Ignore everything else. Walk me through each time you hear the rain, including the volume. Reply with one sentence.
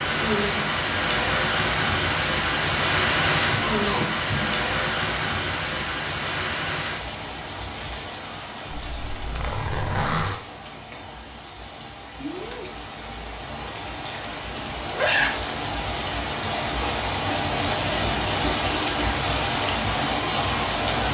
You can hear the rain from 0.0 to 21.1 s, getting quieter then louder.